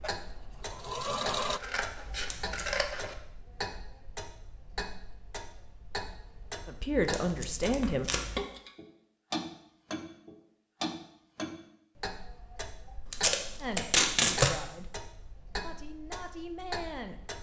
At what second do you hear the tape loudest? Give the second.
14 s.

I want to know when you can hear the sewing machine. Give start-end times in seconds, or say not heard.
0.0-1.6.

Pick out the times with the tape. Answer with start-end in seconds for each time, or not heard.
2.0-2.8, 7.0-8.4, 13.1-14.5.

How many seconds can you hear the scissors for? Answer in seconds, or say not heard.
3 s.